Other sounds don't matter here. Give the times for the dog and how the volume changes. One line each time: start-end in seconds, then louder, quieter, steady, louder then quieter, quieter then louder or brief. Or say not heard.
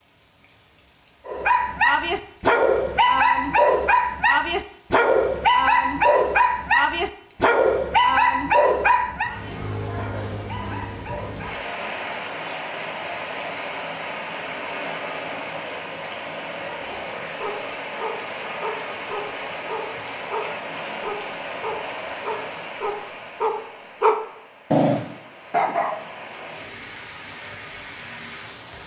1.2-11.6 quieter
16.6-26.1 louder.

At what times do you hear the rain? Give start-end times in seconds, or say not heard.
0.0-28.8.